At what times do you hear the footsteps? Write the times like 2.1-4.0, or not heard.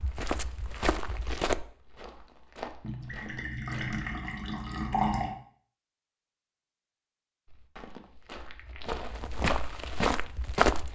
0.0-4.1, 7.5-10.9.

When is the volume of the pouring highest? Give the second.
5 s.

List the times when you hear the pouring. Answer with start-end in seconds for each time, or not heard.
2.8-5.3.